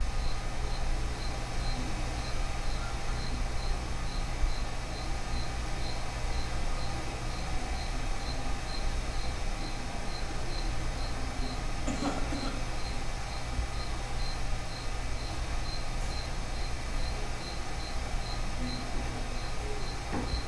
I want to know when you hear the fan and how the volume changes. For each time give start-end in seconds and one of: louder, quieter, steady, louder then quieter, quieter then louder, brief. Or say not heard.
0.0-20.4 steady.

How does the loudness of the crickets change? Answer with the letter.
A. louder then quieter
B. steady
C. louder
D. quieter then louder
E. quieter
B.